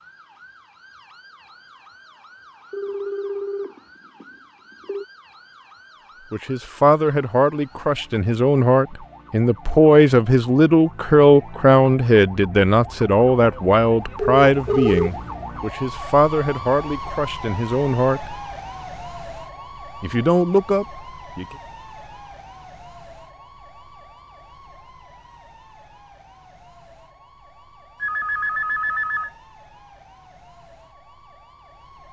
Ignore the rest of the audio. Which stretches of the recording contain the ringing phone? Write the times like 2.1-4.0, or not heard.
2.7-5.0, 14.2-15.1, 28.0-29.3.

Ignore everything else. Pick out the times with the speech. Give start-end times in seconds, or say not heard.
6.3-18.4, 20.0-21.6.